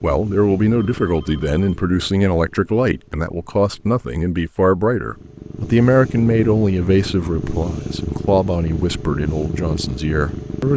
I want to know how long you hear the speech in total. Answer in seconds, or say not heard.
11 s.